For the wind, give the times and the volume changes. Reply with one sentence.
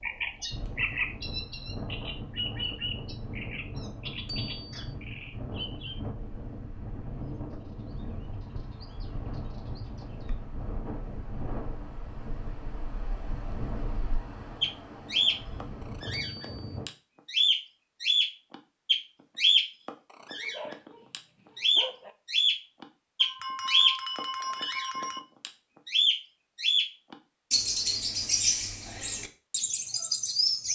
The wind can be heard from 0.0 to 16.9 s, at a steady volume.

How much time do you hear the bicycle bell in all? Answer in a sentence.
You can hear the bicycle bell for 3 seconds altogether.